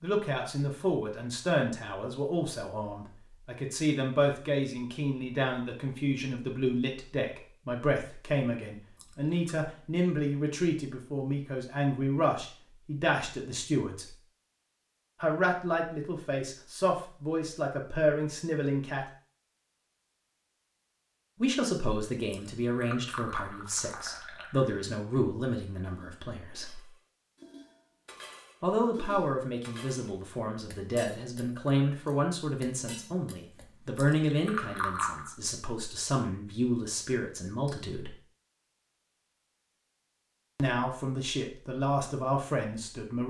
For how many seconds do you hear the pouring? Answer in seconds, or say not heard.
4 s.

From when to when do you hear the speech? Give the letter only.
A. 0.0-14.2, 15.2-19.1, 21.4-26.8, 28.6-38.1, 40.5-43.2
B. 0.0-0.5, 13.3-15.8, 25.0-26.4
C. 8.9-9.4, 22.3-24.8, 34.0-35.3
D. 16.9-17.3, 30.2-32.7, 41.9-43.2
A.